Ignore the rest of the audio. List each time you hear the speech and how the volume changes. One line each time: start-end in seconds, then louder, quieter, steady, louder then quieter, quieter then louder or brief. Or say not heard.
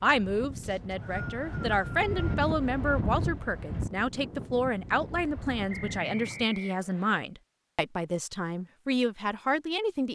0.0-10.0 steady.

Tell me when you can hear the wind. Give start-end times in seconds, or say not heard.
0.0-6.5.